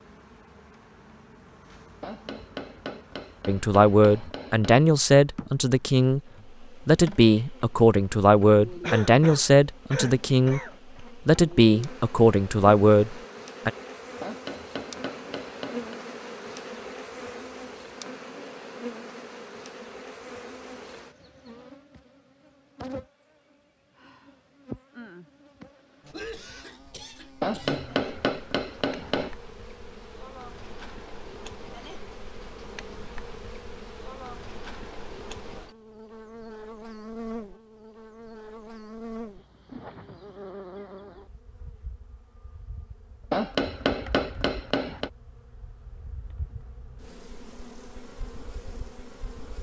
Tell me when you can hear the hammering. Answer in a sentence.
You can hear the hammering from 2.0 to 4.9 s, from 14.2 to 16.0 s, from 27.4 to 29.4 s and from 43.3 to 45.1 s.